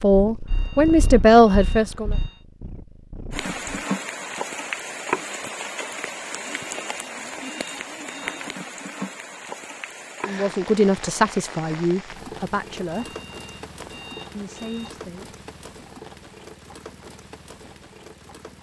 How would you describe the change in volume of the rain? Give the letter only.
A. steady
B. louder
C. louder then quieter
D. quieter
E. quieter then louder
D.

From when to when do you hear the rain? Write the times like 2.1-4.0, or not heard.
3.3-18.5.